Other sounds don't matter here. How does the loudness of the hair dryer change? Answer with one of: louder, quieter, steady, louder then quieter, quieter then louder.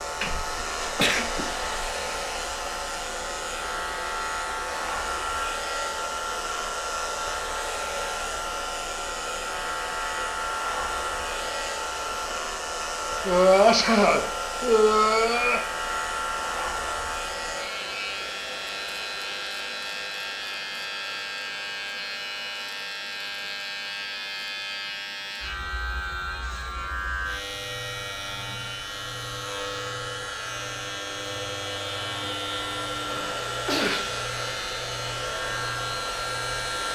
quieter then louder.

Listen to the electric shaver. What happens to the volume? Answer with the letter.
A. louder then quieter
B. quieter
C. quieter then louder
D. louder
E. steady
E.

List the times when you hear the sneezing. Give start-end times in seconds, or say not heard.
0.2-1.6, 13.2-15.6, 33.0-34.1.